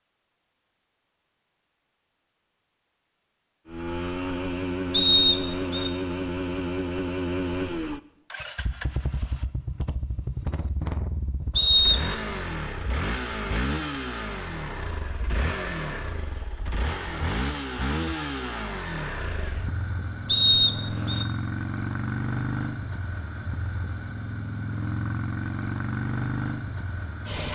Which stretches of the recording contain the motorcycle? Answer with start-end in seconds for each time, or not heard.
3.6-27.5.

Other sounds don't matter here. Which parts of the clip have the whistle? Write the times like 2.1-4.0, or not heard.
4.9-5.9, 11.6-12.2, 20.2-21.2.